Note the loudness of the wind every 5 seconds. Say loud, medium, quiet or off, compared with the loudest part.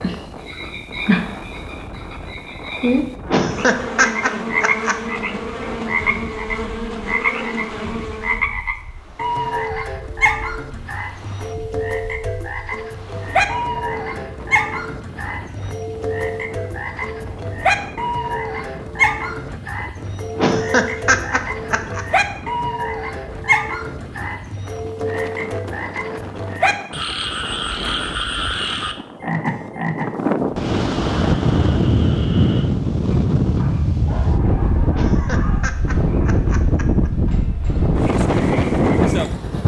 quiet, quiet, quiet, quiet, quiet, quiet, loud, loud.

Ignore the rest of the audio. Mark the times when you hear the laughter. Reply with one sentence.
You can hear the laughter from 3.2 to 5.0 s, from 20.4 to 22.1 s and from 34.9 to 37.1 s.